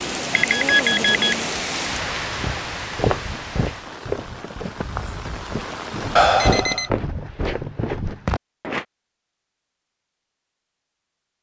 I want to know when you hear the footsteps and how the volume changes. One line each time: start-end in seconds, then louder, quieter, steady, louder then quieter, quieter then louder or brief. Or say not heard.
2.4-8.8 quieter then louder.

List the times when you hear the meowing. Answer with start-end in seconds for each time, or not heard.
4.8-5.5.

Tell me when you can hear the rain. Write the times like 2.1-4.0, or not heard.
0.0-6.3.